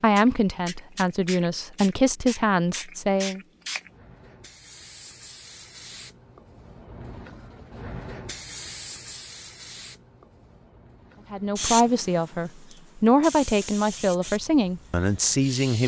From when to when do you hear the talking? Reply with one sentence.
The talking can be heard from 0.0 to 3.4 s and from 11.3 to 15.8 s.